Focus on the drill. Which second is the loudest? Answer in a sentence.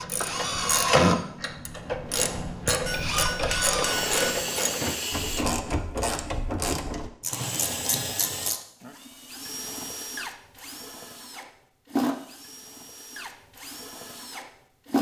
The loudest moment of the drill is at 1 second.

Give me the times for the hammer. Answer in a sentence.
The hammer can be heard from 2.9 to 4.4 s.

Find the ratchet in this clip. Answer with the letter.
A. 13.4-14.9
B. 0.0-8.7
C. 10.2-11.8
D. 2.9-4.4
B.